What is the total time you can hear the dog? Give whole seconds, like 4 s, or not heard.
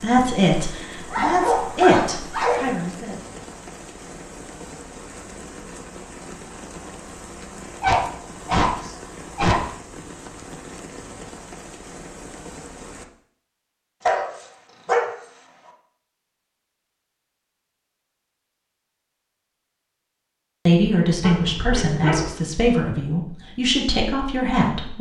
6 s.